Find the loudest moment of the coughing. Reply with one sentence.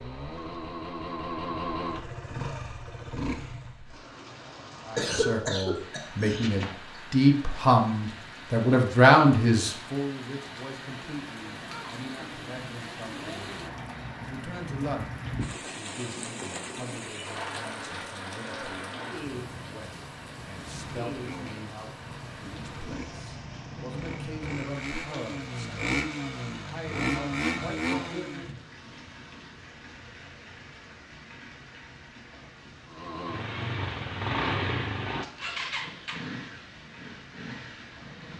The loudest moment of the coughing is at 5 seconds.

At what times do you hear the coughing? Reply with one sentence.
You can hear the coughing from 5.0 to 6.8 s.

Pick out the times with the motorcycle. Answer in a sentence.
The motorcycle can be heard from 0.0 to 3.8 s, from 21.1 to 28.6 s and from 32.9 to 38.3 s.